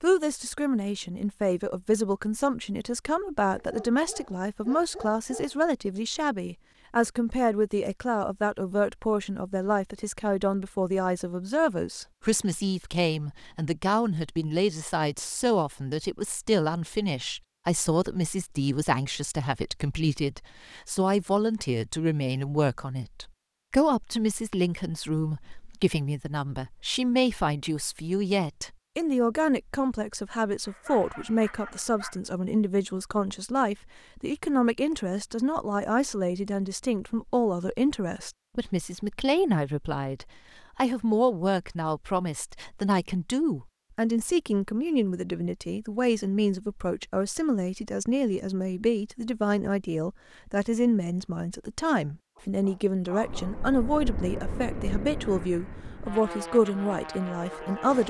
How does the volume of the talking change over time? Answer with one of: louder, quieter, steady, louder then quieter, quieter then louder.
steady.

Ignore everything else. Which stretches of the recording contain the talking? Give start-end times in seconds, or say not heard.
0.0-58.0.